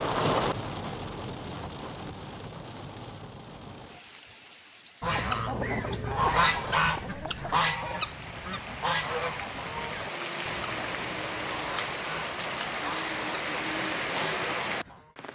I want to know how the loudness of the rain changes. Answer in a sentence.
The loudness of the rain goes down, then up.